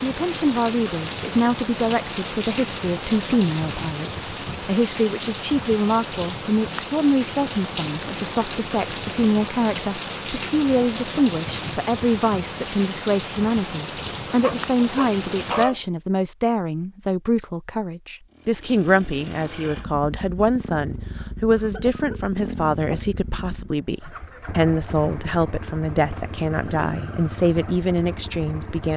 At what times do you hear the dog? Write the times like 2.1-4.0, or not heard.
14.4-15.8.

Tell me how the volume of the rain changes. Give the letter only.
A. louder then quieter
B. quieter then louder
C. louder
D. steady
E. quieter
D.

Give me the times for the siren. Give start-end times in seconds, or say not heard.
not heard.